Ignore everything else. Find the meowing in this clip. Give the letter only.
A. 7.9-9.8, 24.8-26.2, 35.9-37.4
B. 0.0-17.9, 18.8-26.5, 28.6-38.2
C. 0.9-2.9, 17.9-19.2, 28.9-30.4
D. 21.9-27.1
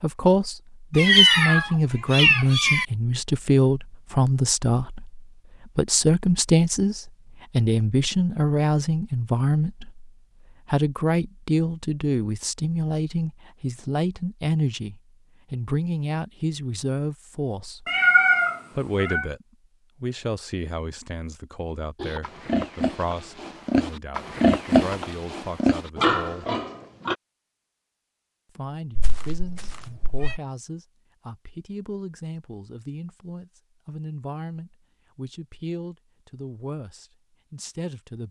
C.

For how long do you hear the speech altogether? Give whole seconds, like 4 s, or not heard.
35 s.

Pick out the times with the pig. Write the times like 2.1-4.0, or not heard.
21.9-27.1.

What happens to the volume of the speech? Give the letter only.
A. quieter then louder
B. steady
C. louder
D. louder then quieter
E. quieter
E.